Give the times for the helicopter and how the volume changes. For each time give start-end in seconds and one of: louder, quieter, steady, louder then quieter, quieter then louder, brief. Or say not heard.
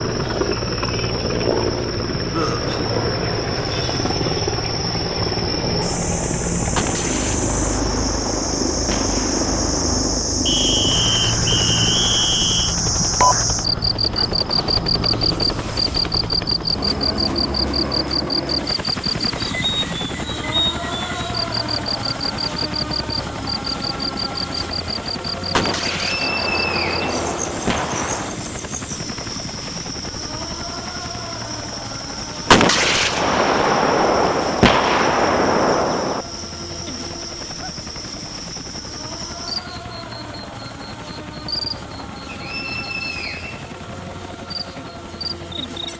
0.0-45.9 quieter.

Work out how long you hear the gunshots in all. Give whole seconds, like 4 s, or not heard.
10 s.